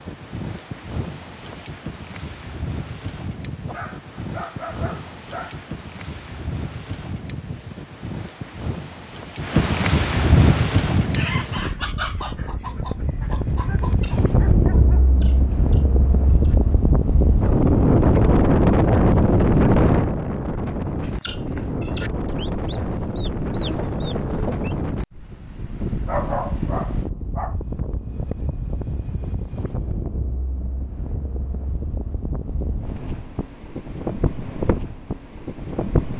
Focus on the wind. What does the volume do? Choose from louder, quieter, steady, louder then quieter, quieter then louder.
louder then quieter.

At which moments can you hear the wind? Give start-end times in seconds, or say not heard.
0.0-36.1.